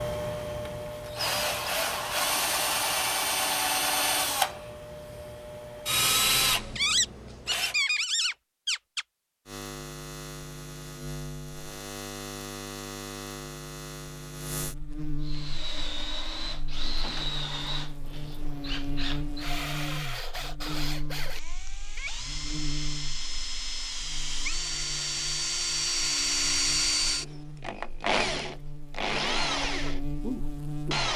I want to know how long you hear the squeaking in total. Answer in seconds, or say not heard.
2 s.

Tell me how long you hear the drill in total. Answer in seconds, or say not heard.
24 s.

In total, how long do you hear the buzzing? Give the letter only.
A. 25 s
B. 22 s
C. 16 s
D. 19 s
B.